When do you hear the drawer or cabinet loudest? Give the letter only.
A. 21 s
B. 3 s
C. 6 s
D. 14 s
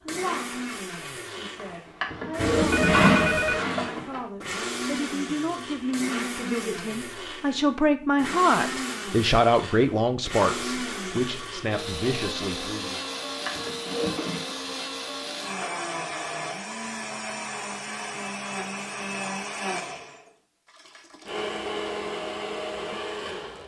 B.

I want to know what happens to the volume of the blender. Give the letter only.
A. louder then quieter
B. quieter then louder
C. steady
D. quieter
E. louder
C.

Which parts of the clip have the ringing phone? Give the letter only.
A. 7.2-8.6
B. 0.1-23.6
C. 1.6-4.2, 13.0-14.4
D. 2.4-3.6
D.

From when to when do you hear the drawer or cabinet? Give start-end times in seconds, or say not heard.
1.6-4.2, 13.0-14.4.